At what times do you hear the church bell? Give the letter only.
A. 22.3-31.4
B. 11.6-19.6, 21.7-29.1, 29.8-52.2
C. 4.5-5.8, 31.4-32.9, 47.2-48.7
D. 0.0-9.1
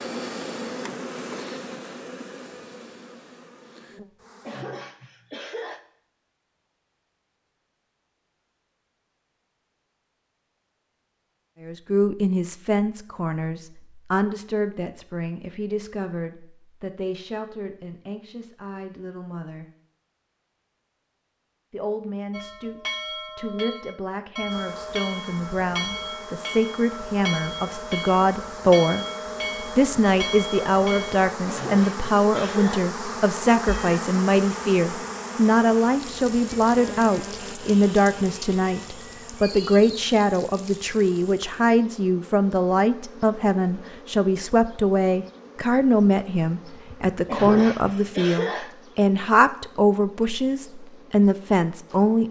A.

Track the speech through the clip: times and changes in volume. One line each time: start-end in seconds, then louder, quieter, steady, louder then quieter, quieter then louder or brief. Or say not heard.
11.6-19.6 quieter
21.7-29.1 louder
29.8-52.2 steady.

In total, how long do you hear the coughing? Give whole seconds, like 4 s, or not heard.
4 s.